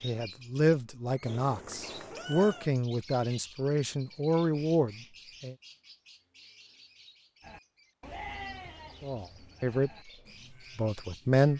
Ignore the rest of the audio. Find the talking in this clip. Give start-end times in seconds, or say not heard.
0.0-5.5, 9.0-10.1, 10.8-11.5.